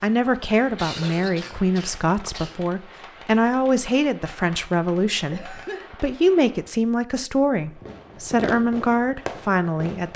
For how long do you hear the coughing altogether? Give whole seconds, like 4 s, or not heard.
2 s.